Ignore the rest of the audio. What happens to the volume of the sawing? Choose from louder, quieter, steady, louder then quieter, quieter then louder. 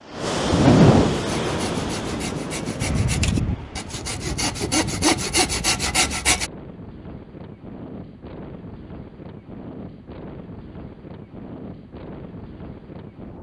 louder.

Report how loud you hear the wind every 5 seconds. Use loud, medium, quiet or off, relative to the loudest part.
loud, quiet, quiet.